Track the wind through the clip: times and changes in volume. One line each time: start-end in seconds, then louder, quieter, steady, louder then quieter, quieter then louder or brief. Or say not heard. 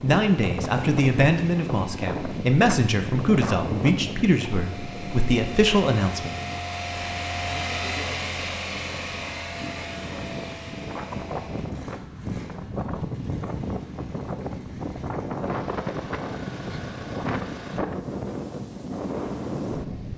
0.0-20.1 quieter then louder.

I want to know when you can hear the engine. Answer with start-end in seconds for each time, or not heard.
0.0-17.8.